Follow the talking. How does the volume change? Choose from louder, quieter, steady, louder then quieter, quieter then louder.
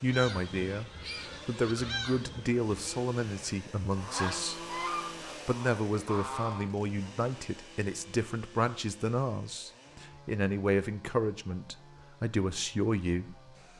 steady.